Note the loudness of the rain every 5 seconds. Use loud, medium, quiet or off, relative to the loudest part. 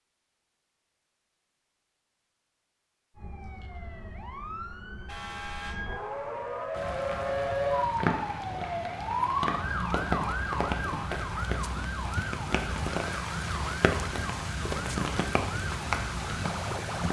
off, loud, loud, loud.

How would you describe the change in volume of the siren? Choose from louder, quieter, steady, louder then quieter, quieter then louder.
louder then quieter.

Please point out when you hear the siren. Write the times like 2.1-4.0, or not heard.
3.1-17.0.